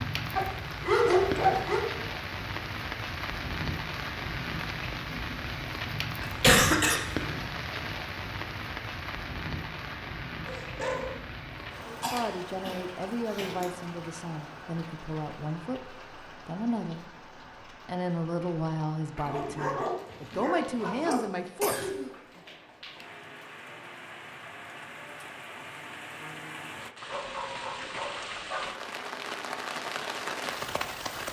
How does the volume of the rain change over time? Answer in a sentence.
The loudness of the rain goes down, then up.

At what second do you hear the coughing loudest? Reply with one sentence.
The volume of the coughing peaks at 7 seconds.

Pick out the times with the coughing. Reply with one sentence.
The coughing can be heard from 6.2 to 7.0 s, from 12.0 to 13.7 s and from 21.1 to 22.1 s.